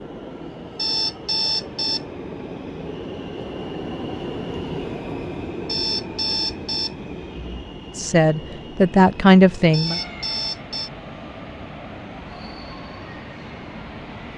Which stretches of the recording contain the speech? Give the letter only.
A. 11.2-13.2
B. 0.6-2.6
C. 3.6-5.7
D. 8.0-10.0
D.